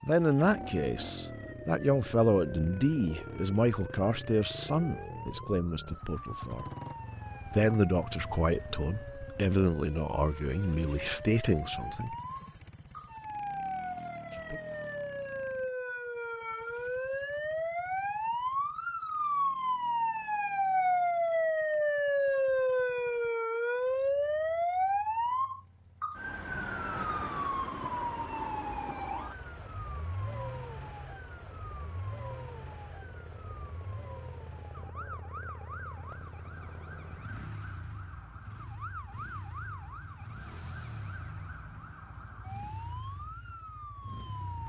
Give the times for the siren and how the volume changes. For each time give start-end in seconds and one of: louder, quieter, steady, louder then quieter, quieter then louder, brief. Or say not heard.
0.1-44.6 louder then quieter.